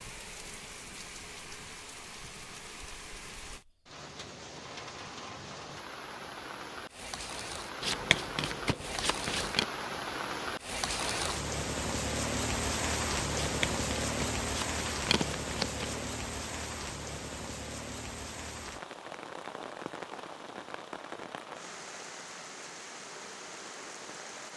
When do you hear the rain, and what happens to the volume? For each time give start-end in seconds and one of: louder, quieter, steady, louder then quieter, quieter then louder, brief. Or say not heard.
0.0-24.5 louder then quieter.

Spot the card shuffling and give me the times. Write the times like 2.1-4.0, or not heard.
7.8-9.7, 13.4-16.1.